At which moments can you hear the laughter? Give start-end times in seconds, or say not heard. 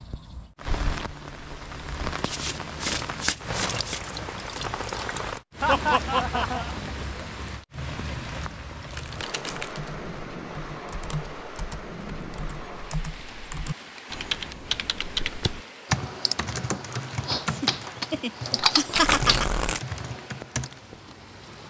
5.6-6.8, 17.4-19.5.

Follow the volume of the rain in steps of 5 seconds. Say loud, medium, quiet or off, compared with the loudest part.
loud, loud, medium, medium, medium.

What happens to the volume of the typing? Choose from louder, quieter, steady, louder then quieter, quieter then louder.
louder.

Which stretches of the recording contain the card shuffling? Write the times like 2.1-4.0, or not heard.
2.2-4.0, 8.8-9.8, 18.8-19.8.